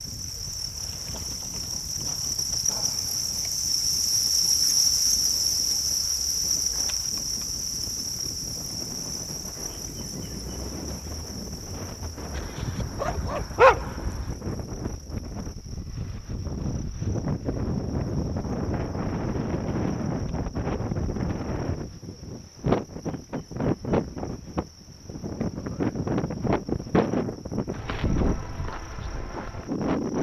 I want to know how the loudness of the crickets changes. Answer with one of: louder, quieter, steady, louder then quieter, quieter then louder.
quieter.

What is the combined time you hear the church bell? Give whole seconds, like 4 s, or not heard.
not heard.